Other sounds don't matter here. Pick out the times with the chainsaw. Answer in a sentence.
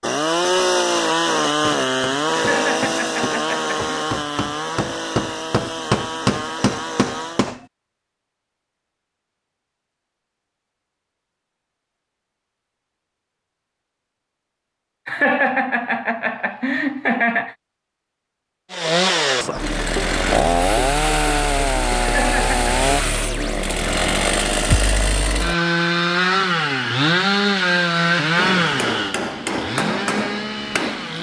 The chainsaw can be heard from 0.0 to 7.5 s and from 18.7 to 31.1 s.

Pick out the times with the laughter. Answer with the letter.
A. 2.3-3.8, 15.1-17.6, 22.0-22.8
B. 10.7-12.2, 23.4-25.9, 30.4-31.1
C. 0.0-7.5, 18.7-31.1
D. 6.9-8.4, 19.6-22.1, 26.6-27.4
A.